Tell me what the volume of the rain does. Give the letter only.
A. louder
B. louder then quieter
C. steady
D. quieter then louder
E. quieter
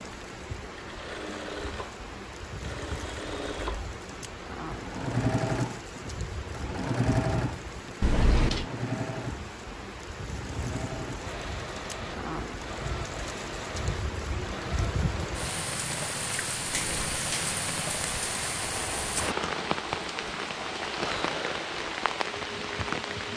A.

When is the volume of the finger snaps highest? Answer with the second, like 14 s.
8 s.